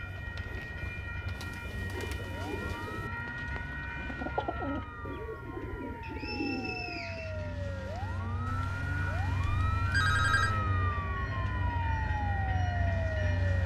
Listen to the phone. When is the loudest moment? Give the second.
10 s.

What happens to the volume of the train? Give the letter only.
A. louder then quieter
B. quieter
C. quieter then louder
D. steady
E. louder
C.